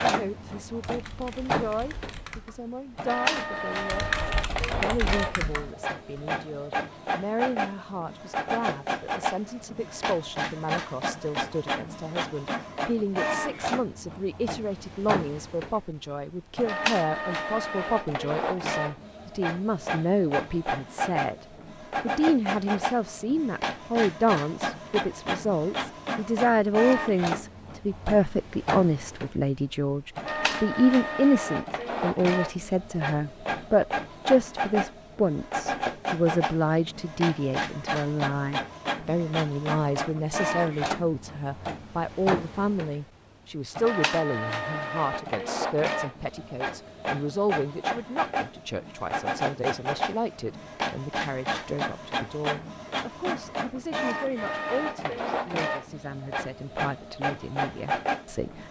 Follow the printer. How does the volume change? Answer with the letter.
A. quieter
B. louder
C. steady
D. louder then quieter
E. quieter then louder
C.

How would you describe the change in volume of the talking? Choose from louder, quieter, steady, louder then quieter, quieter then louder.
louder then quieter.